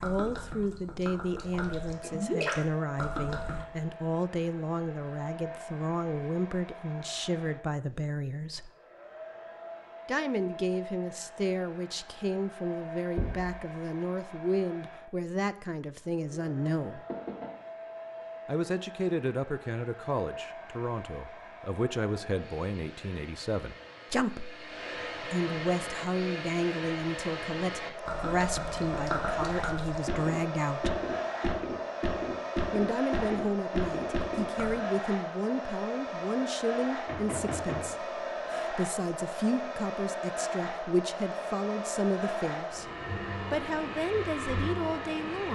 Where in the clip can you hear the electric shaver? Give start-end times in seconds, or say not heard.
not heard.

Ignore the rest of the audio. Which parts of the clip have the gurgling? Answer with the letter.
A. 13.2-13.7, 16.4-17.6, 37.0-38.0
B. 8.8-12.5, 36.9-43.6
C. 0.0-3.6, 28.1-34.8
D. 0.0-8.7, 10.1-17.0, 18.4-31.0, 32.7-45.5
C.